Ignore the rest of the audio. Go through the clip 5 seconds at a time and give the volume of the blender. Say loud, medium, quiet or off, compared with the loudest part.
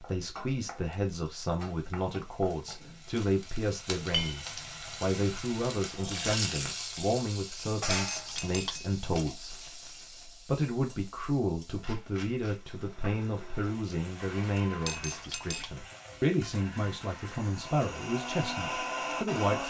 off, off, medium, loud.